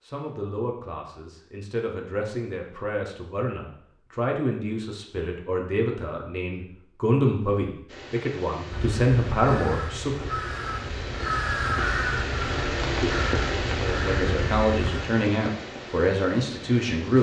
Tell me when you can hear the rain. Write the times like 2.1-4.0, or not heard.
7.8-17.1.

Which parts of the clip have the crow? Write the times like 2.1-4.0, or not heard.
8.7-15.0.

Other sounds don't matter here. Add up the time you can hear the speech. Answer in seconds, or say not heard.
14 s.